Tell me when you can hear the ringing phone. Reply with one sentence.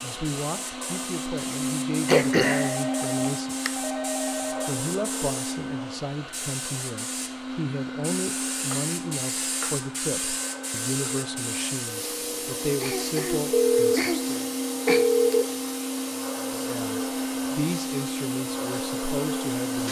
The ringing phone can be heard from 2.5 to 4.8 s and from 13.5 to 15.4 s.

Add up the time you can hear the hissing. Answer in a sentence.
You can hear the hissing for 20 seconds altogether.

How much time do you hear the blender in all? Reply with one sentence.
You can hear the blender for 20 seconds altogether.